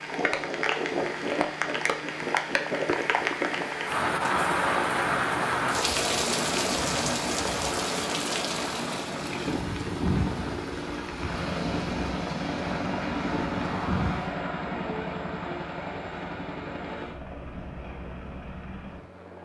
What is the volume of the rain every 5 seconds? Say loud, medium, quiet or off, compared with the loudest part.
loud, loud, medium, off.